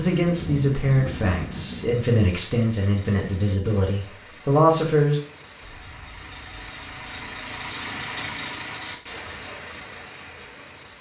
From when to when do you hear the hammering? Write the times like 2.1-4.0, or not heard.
not heard.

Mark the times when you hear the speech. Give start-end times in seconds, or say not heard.
0.0-5.2.